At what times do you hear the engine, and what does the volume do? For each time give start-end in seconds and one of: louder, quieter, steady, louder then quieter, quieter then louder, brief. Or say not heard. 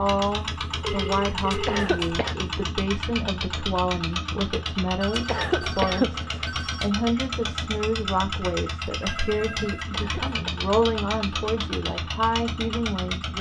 0.0-13.3 steady.